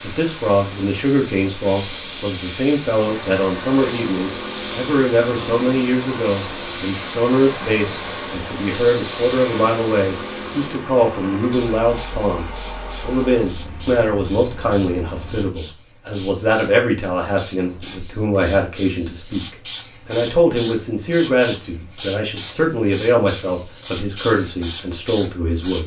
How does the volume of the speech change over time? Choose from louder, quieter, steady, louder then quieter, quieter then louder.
steady.